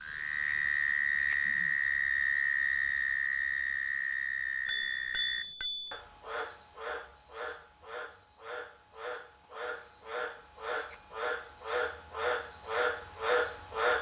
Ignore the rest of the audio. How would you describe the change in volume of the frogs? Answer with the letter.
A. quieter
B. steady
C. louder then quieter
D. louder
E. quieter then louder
E.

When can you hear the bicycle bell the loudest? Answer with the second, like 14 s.
5 s.